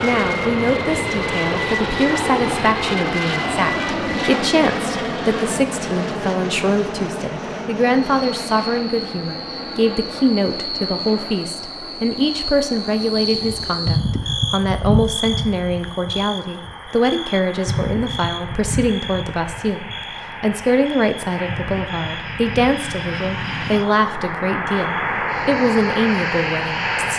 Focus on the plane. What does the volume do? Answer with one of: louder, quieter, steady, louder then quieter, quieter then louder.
quieter then louder.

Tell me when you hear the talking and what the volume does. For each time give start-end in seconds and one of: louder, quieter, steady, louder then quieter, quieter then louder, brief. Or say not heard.
0.0-27.1 steady.